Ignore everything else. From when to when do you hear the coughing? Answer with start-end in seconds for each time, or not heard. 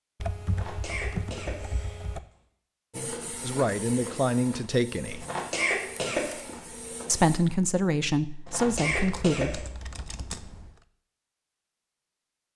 0.5-2.1, 5.2-6.5, 8.4-9.6.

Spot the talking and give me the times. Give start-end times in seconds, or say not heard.
3.4-5.2, 7.0-9.7.